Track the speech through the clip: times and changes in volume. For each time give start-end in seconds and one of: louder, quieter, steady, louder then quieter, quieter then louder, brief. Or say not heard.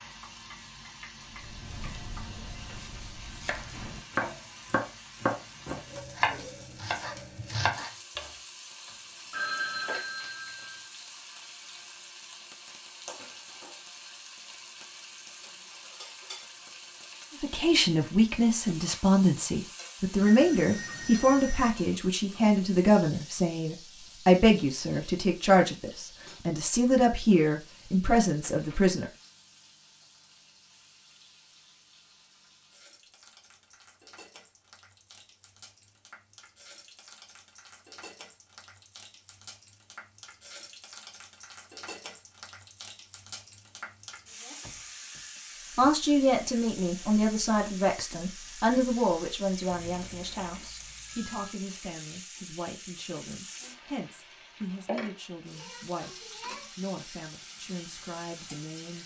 17.4-29.1 steady
45.8-59.0 quieter.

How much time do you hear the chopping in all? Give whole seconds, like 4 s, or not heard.
7 s.